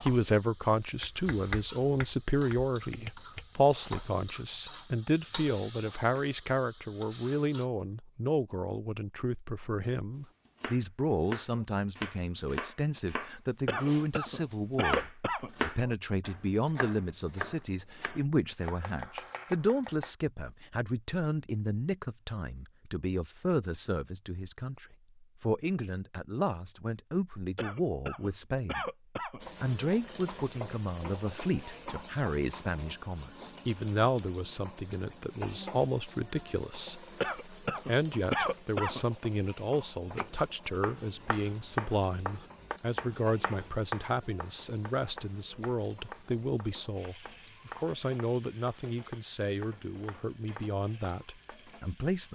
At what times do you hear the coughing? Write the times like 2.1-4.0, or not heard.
13.7-15.5, 27.6-29.4, 37.2-39.0.